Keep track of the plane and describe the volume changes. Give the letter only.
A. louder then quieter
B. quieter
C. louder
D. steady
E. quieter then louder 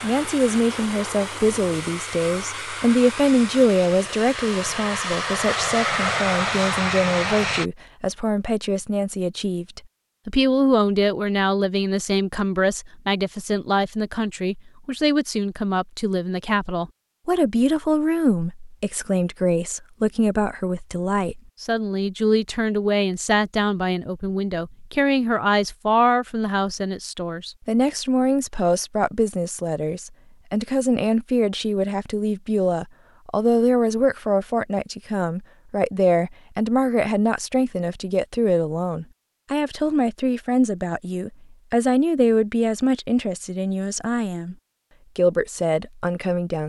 C.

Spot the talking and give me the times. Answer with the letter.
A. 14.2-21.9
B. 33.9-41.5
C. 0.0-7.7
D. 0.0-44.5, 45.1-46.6
D.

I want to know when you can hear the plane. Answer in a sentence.
You can hear the plane from 0.0 to 7.7 s.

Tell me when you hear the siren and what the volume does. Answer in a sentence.
You can't hear the siren here.